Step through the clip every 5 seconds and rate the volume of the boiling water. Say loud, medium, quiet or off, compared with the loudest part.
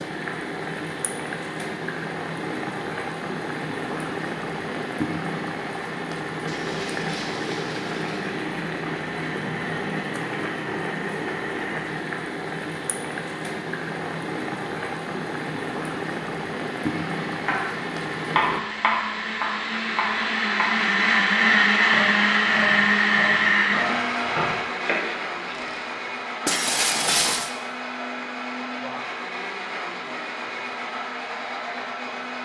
loud, loud, loud, loud, off, off, off.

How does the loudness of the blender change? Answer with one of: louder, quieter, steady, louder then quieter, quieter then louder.
louder then quieter.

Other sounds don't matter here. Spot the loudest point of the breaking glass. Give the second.
27 s.